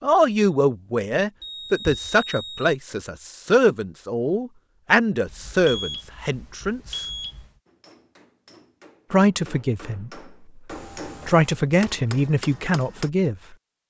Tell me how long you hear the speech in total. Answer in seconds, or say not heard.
10 s.